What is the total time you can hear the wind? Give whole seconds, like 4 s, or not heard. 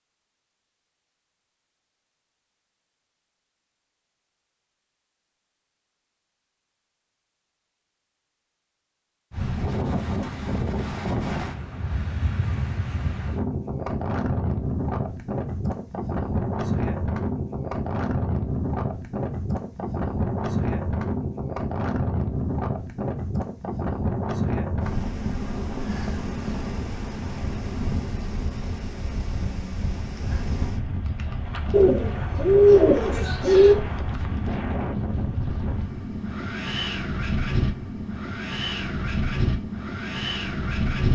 32 s.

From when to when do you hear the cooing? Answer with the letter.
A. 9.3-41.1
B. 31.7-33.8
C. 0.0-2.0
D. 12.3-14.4
B.